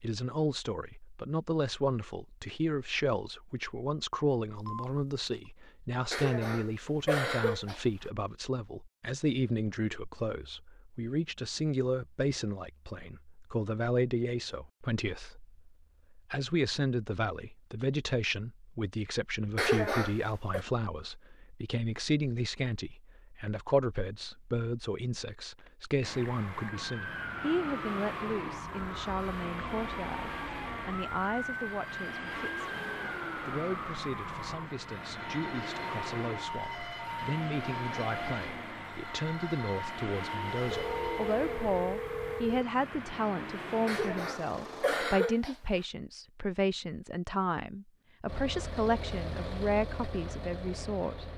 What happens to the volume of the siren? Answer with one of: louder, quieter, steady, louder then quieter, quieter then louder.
steady.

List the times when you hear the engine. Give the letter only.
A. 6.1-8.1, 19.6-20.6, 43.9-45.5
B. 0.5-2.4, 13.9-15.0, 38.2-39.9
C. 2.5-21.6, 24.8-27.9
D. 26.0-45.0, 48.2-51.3
D.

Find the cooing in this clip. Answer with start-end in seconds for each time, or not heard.
not heard.